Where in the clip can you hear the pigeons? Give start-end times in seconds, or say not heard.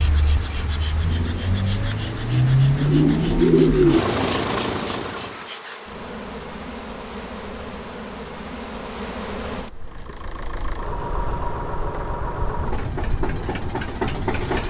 2.8-4.2.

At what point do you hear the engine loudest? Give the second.
3 s.